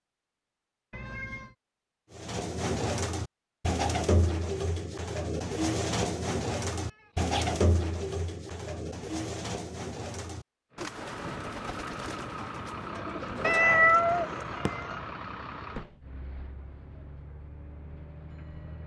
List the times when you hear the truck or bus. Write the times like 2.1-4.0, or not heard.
10.7-18.8.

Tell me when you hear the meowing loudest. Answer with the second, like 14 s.
14 s.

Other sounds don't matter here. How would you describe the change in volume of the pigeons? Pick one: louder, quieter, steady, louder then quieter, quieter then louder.
quieter.